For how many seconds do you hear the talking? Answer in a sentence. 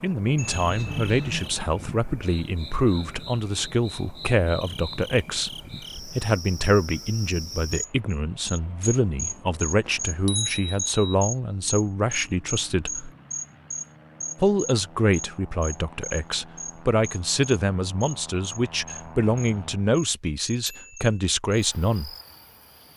You can hear the talking for 21 seconds altogether.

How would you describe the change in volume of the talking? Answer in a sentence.
The volume of the talking stays about the same.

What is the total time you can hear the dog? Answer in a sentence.
The dog can't be heard in this clip.